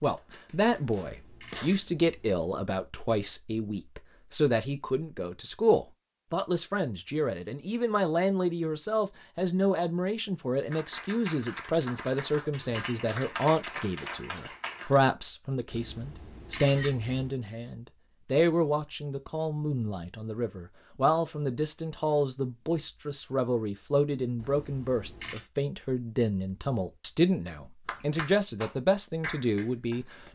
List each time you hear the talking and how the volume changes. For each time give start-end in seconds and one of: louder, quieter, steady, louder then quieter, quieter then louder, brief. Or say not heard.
0.0-30.3 steady.